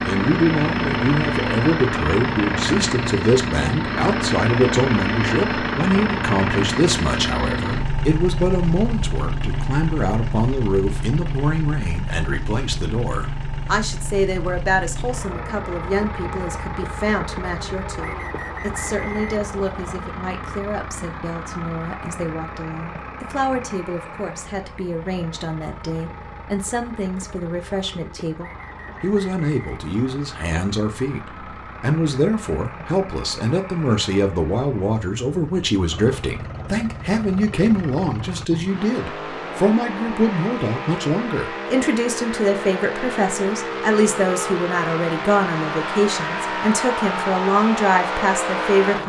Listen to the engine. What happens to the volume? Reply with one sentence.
The volume of the engine goes down, then up.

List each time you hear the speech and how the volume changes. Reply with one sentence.
The speech can be heard from 0.0 to 49.0 s, getting quieter then louder.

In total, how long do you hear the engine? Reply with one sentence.
You can hear the engine for 49 seconds altogether.